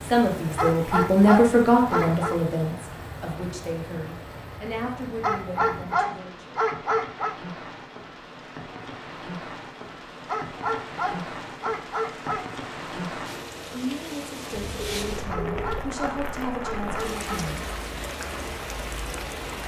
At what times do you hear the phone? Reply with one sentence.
You can hear the phone from 14.6 to 16.0 s.